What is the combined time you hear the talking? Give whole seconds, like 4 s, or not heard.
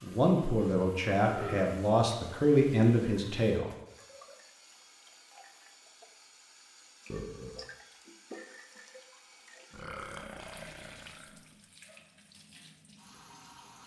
4 s.